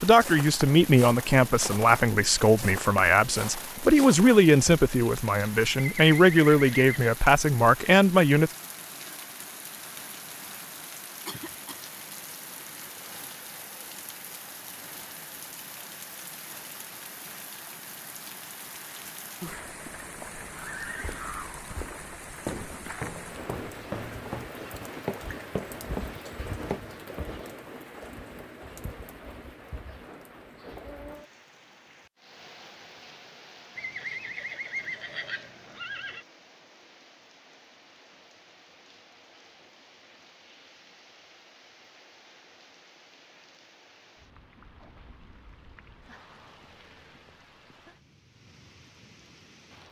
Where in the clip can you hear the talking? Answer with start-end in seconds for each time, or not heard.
0.0-8.5.